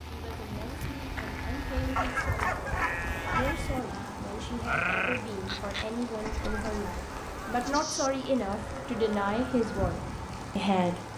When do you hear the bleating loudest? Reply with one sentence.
The volume of the bleating peaks at 5 seconds.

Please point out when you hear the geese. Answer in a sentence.
You can hear the geese from 1.9 to 3.5 s and from 6.3 to 7.8 s.